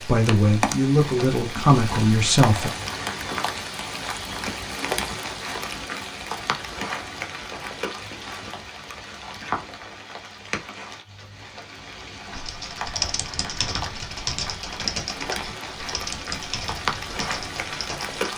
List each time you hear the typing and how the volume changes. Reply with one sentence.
You can hear the typing from 12.3 to 18.2 s, getting quieter.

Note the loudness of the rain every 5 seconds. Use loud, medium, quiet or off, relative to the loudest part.
loud, loud, medium, loud.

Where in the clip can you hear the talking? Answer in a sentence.
You can hear the talking from 0.1 to 2.7 s.